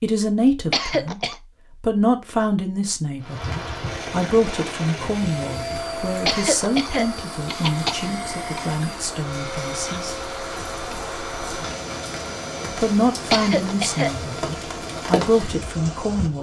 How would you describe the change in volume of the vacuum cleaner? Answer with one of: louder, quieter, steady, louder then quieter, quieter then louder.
quieter.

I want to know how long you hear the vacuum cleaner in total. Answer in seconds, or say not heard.
8 s.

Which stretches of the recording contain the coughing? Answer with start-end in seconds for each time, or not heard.
0.7-1.4, 6.2-8.7, 13.3-14.1.